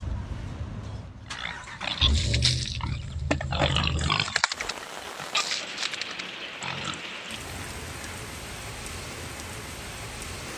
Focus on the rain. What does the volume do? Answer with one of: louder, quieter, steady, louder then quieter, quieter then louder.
steady.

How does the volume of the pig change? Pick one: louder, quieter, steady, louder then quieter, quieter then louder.
quieter.